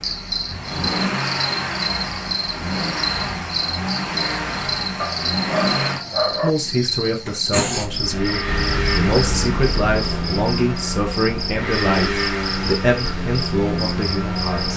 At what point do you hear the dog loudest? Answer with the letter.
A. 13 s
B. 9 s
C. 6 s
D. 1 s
C.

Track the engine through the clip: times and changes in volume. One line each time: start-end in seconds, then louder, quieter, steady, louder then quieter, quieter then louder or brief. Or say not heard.
0.0-14.7 steady.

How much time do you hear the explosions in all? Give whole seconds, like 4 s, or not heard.
2 s.